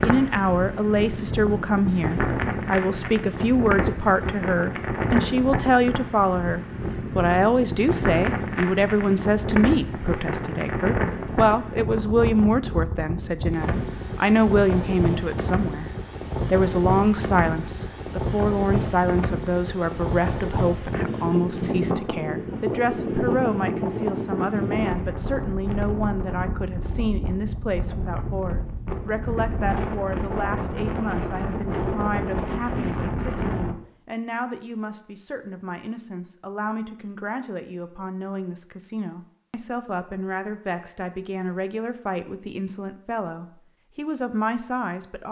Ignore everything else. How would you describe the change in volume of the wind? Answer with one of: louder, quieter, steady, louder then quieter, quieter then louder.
steady.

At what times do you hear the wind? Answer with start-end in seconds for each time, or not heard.
0.0-33.8.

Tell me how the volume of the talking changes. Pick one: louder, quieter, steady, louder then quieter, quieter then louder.
quieter.